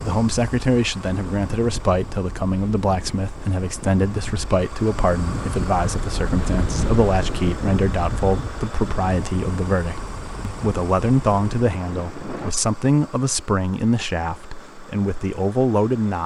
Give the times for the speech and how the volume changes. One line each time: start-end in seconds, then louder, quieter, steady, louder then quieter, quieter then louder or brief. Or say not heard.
0.0-16.2 steady.